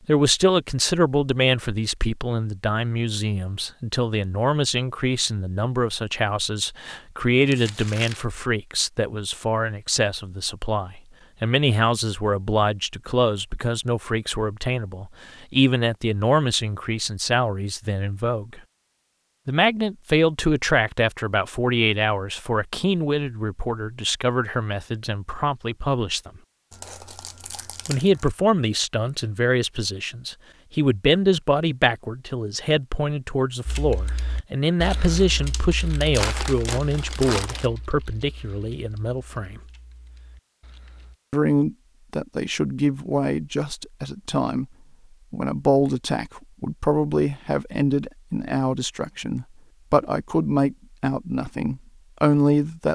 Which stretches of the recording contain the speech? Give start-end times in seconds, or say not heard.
0.1-18.6, 19.4-26.3, 27.9-39.6, 41.3-44.6, 45.3-52.9.